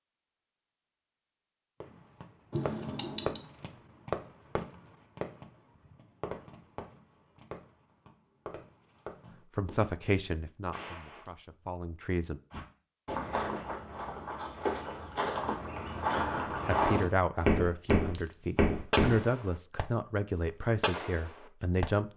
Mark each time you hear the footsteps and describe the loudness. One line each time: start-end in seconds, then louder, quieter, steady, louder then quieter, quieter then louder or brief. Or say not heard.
12.5-19.2 louder.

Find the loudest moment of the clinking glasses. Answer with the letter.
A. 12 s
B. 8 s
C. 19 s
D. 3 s
D.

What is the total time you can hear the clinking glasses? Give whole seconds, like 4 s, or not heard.
2 s.